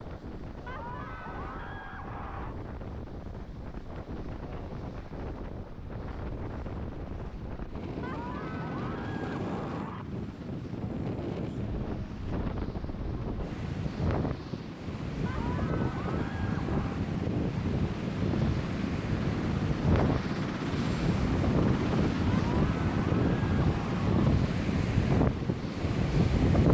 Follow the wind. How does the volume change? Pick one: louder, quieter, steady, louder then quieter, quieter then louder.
louder.